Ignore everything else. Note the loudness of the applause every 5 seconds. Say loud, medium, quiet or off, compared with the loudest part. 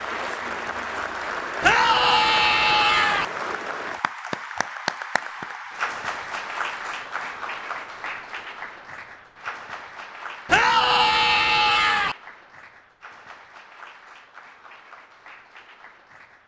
loud, loud, quiet, quiet.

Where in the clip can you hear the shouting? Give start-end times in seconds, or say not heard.
1.6-3.2, 10.4-12.2.